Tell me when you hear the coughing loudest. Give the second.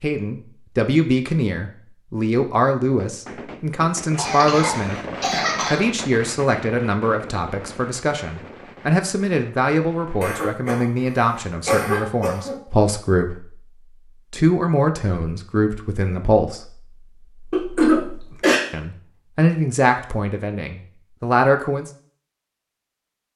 18 s.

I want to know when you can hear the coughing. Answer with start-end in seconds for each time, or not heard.
4.2-5.8, 10.2-10.8, 11.7-12.6, 17.5-18.6.